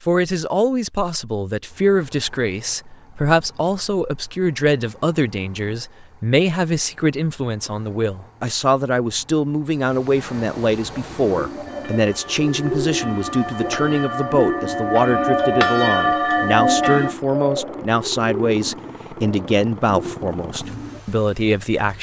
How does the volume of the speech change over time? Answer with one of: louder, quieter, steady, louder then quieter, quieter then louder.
steady.